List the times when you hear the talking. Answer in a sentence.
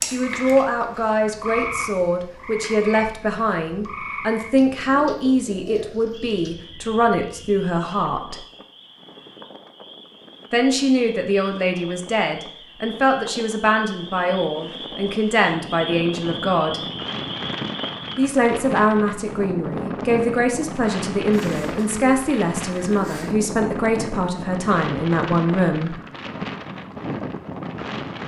The talking can be heard from 0.1 to 8.4 s, from 10.5 to 16.8 s and from 18.1 to 25.9 s.